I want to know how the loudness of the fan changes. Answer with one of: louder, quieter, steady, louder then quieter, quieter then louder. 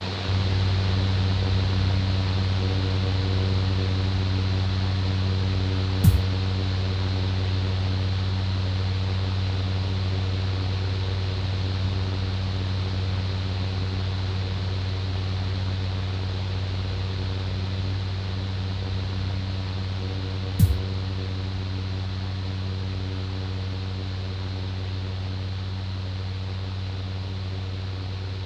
quieter.